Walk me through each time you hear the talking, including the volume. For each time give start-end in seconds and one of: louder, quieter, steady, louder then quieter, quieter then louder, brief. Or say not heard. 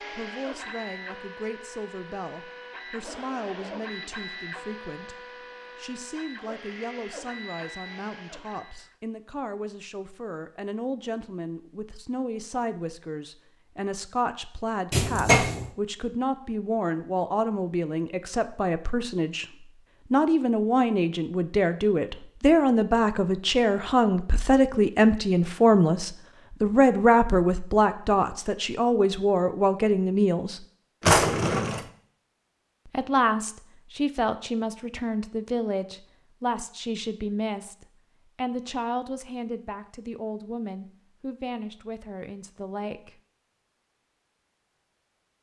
0.0-30.6 louder
32.9-43.2 quieter.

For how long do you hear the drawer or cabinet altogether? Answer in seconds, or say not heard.
2 s.